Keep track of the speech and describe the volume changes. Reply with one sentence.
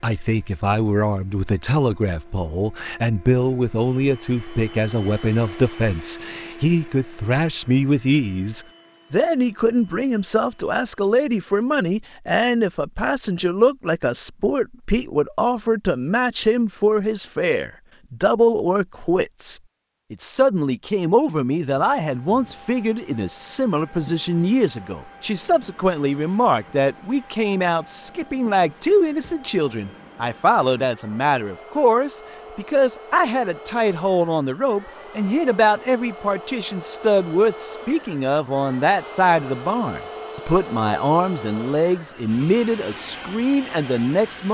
The loudness of the speech stays about the same.